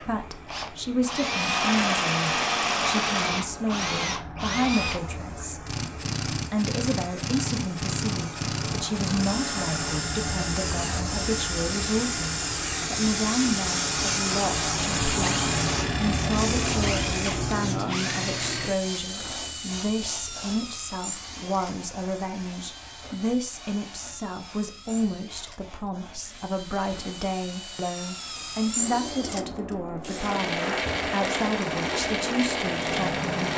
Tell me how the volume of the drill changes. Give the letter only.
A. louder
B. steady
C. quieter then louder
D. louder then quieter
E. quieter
C.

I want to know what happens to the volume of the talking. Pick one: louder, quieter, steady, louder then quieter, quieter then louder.
steady.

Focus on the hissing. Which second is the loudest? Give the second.
15 s.